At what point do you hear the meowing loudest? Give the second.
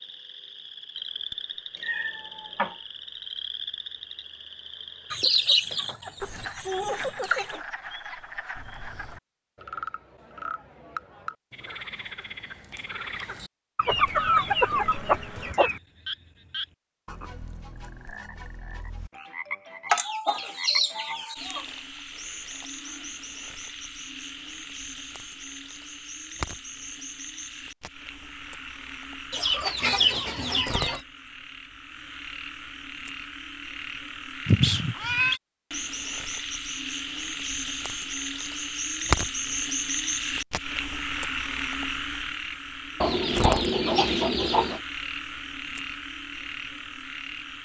35 s.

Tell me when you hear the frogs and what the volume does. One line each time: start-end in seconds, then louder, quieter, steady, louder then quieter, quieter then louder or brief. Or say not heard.
0.0-47.6 louder.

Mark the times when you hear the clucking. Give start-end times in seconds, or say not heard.
5.1-7.6, 13.8-15.8, 19.9-21.6, 29.3-31.0, 43.0-44.8.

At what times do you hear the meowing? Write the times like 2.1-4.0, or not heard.
1.8-2.8, 34.5-35.4.